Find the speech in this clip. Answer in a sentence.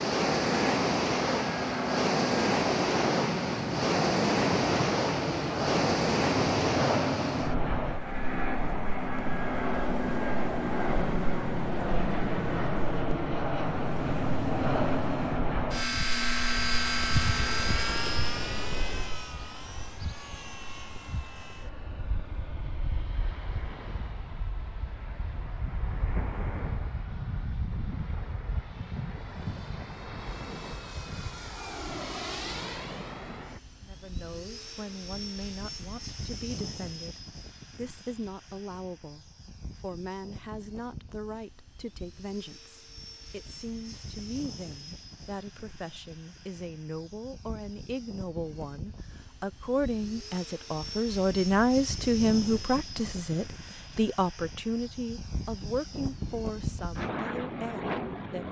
The speech can be heard from 33.8 to 58.4 s.